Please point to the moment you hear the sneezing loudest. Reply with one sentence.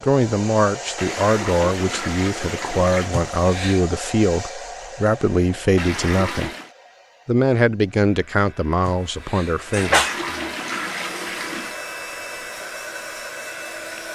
The loudest moment of the sneezing is at 10 seconds.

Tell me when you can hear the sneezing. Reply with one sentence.
You can hear the sneezing from 3.1 to 3.9 s and from 8.8 to 10.2 s.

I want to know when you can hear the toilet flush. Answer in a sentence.
You can hear the toilet flush from 0.9 to 3.1 s, from 5.8 to 6.7 s and from 9.8 to 11.8 s.